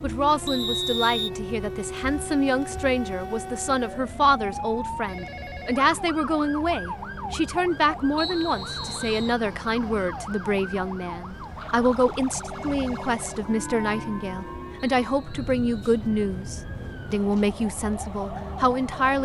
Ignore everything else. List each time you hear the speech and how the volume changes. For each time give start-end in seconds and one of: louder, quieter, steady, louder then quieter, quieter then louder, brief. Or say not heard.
0.0-19.2 steady.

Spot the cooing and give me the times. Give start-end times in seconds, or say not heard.
not heard.